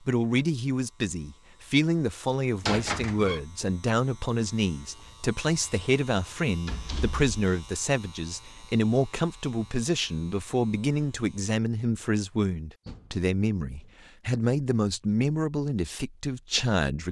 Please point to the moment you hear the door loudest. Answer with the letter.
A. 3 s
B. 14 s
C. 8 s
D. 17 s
A.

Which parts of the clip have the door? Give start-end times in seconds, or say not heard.
2.6-3.4, 6.7-7.4, 12.8-13.9.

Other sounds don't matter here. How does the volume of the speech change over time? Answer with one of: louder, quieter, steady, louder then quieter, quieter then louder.
steady.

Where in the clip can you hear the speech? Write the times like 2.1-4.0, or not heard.
0.0-17.0.